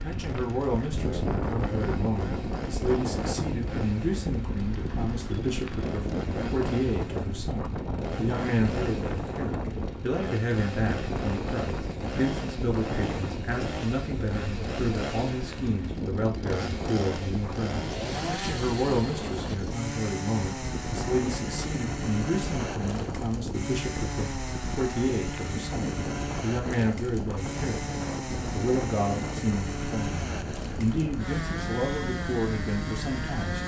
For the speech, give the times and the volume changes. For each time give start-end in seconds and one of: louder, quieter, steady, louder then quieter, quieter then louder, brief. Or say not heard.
0.0-33.6 steady.